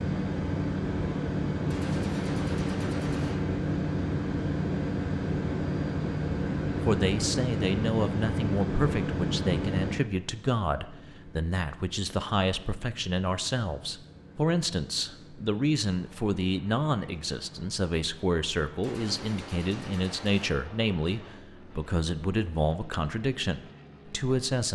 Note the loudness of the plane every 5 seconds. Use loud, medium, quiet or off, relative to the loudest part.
loud, loud, quiet, quiet, quiet.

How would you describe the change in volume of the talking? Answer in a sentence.
The loudness of the talking stays about the same.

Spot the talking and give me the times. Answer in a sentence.
The talking can be heard from 6.8 to 24.6 s.